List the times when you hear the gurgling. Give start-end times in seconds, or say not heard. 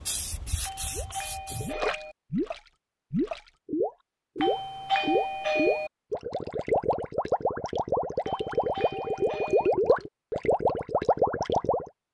0.9-11.9.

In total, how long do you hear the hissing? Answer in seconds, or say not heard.
2 s.